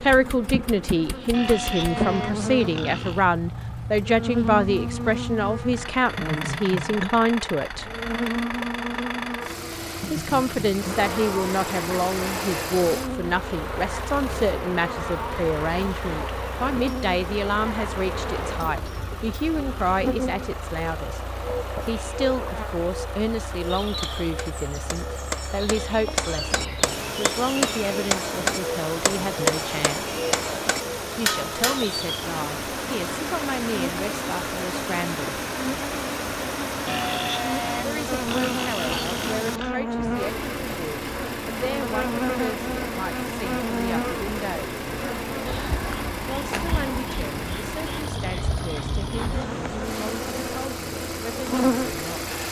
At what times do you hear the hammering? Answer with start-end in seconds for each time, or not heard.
23.8-31.9.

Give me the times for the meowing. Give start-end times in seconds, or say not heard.
not heard.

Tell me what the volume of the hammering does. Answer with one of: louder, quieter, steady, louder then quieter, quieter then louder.
louder.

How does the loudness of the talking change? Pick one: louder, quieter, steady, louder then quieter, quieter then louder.
quieter.